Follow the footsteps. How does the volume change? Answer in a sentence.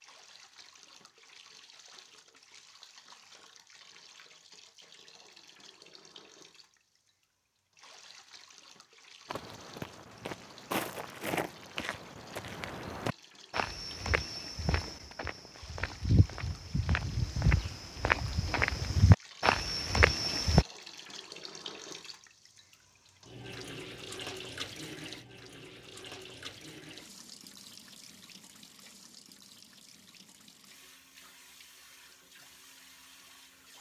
The volume of the footsteps goes up.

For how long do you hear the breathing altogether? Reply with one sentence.
You can't hear the breathing here.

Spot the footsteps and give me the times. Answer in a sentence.
You can hear the footsteps from 9.2 to 20.6 s.